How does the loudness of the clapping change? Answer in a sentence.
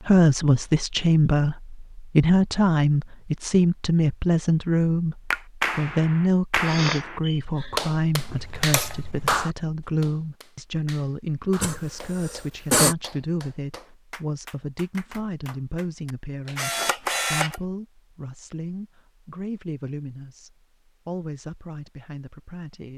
The volume of the clapping goes down.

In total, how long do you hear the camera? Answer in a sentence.
You can hear the camera for 2 seconds altogether.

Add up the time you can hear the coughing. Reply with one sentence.
You can hear the coughing for 2 seconds altogether.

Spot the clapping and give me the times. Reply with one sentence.
You can hear the clapping from 5.3 to 16.8 s.